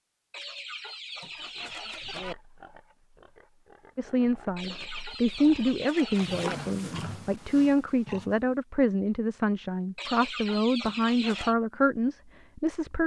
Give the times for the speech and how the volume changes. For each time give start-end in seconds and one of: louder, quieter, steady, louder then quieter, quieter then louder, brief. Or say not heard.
4.0-13.0 steady.